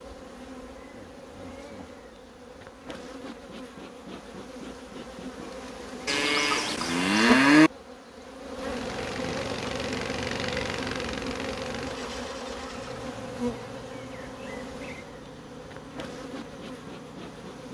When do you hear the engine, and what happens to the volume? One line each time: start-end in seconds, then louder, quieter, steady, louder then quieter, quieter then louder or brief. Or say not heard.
8.7-17.6 quieter.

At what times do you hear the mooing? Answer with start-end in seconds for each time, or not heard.
6.0-7.7.